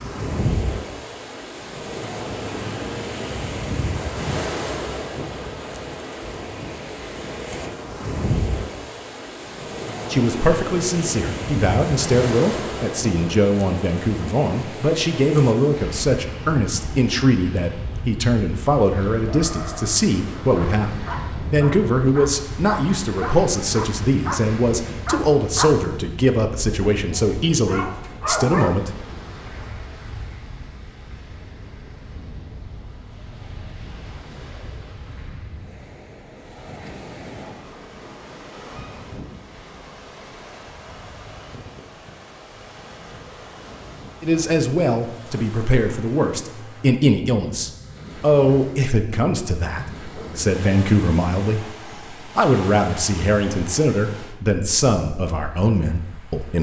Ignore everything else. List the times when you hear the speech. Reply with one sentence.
You can hear the speech from 10.1 to 28.9 s and from 44.2 to 56.5 s.